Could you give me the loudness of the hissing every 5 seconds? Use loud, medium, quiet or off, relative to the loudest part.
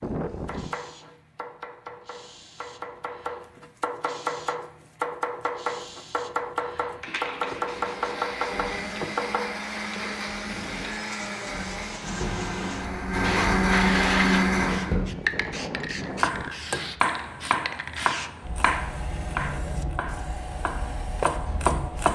quiet, medium, loud, loud, loud.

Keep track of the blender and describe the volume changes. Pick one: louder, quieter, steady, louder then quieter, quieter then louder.
louder.